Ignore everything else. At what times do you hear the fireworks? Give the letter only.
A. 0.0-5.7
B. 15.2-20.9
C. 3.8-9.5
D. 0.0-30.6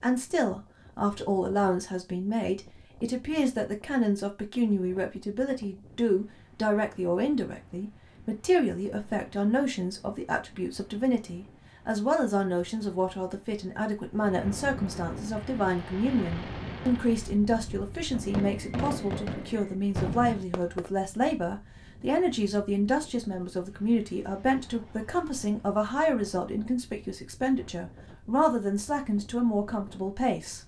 B.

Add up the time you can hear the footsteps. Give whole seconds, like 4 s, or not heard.
not heard.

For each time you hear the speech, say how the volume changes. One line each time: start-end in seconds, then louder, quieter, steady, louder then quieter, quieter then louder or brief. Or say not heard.
0.0-30.6 steady.